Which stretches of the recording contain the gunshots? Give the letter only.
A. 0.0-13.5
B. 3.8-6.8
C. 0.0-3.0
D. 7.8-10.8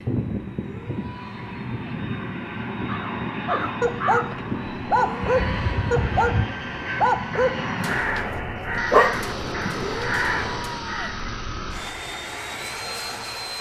D.